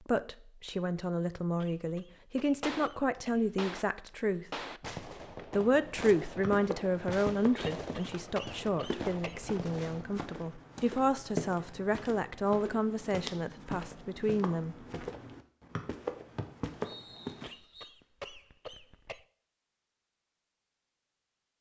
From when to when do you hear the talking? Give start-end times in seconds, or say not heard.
0.1-4.6, 5.5-14.8.